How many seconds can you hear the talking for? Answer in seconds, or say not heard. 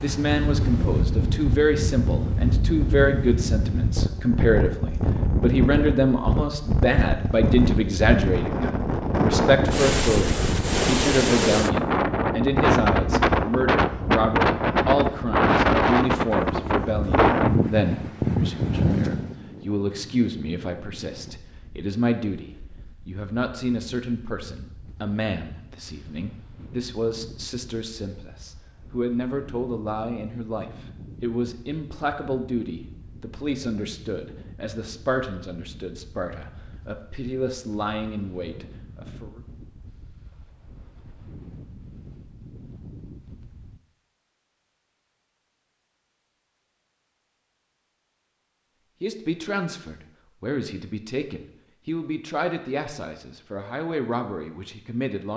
46 s.